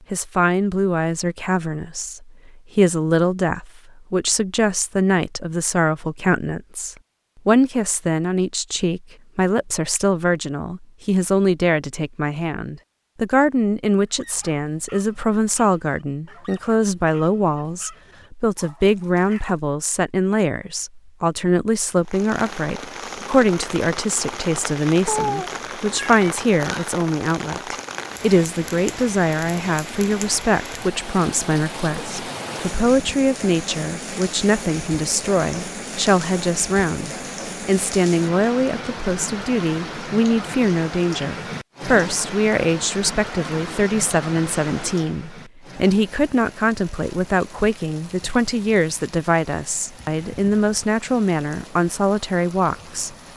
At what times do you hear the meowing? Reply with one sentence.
You can hear the meowing from 25.1 to 26.2 s.